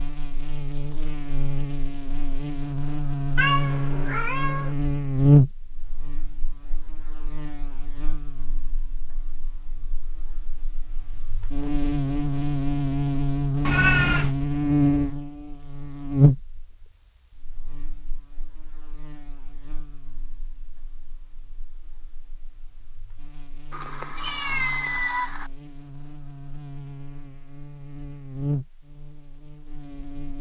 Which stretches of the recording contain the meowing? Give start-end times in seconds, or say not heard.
3.4-4.8, 13.7-14.3, 23.7-25.5.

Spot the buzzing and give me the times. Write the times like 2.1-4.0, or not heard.
0.0-30.3.